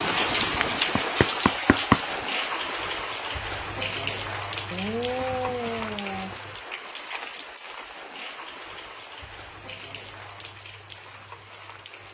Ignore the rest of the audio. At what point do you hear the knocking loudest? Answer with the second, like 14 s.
2 s.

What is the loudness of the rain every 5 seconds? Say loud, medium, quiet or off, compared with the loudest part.
loud, medium, quiet.